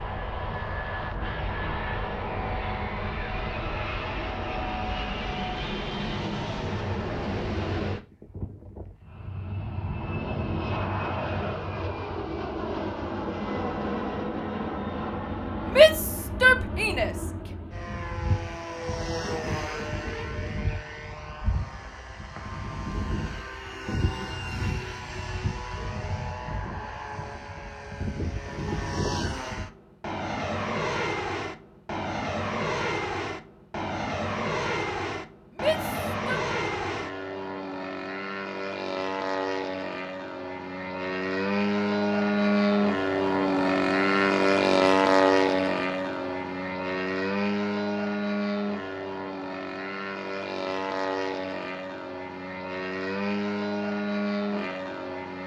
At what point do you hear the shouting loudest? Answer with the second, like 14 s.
16 s.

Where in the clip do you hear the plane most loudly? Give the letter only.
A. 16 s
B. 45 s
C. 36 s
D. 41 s
B.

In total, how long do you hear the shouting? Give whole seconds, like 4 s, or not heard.
2 s.